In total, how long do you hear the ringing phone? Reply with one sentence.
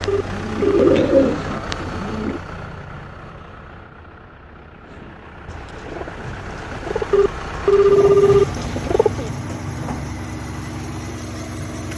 You can hear the ringing phone for 2 seconds altogether.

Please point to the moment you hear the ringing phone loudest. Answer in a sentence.
The loudest moment of the ringing phone is at 8 seconds.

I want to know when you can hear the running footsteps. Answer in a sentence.
You can't hear the running footsteps here.